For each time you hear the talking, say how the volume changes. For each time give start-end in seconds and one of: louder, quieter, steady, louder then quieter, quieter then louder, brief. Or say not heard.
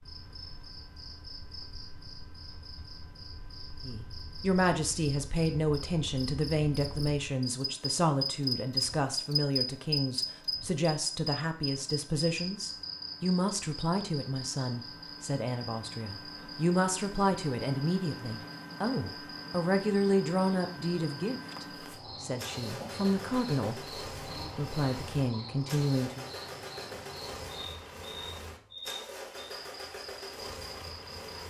3.9-23.8 steady
24.6-26.2 brief.